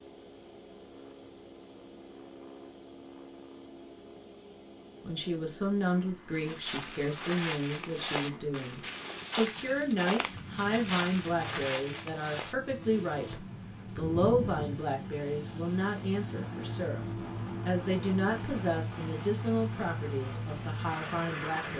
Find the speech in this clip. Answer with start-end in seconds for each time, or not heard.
5.0-21.7.